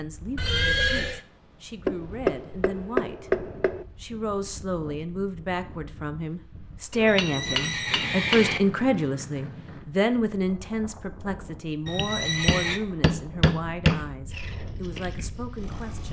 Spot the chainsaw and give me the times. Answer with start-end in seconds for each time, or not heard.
14.3-16.0.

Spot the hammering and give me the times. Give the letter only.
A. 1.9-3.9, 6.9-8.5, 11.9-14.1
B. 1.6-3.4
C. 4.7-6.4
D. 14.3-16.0
A.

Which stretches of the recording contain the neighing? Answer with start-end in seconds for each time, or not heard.
0.3-1.2, 7.0-8.6, 11.8-12.8.